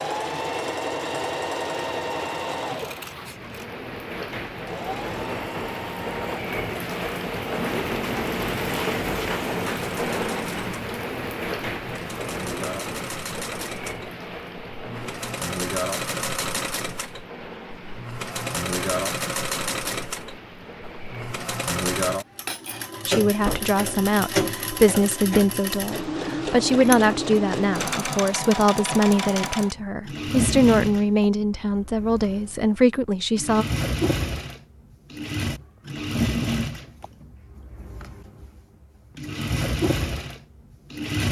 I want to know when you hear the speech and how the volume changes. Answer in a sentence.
You can hear the speech from 23.1 to 33.6 s, at a steady volume.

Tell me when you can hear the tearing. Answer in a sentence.
The tearing can't be heard in this clip.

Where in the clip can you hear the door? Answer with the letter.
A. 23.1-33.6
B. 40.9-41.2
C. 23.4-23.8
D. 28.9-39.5
C.